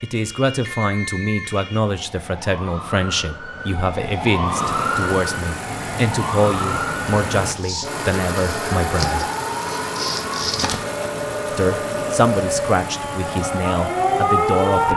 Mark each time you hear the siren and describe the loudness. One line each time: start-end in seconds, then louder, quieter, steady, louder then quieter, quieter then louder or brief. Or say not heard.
0.0-14.9 louder.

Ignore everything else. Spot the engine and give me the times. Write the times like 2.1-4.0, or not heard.
4.5-14.9.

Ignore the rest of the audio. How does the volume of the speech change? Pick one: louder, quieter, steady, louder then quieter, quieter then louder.
steady.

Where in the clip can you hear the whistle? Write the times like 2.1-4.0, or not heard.
not heard.